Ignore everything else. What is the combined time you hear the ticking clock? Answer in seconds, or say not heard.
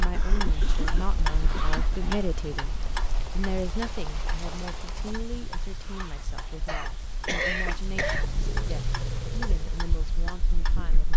11 s.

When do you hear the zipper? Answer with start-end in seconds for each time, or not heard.
1.3-2.3, 5.7-6.7.